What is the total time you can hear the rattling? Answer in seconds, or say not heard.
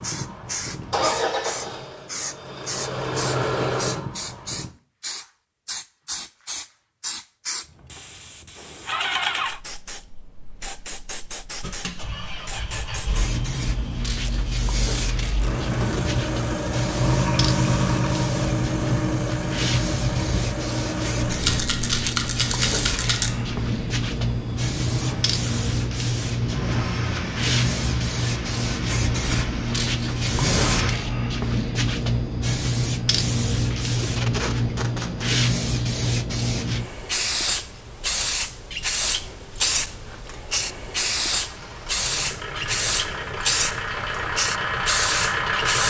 2 s.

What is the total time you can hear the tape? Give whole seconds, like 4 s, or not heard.
4 s.